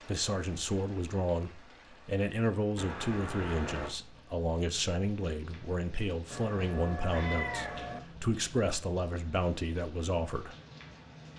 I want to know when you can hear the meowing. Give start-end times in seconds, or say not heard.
2.8-4.0, 6.3-8.0.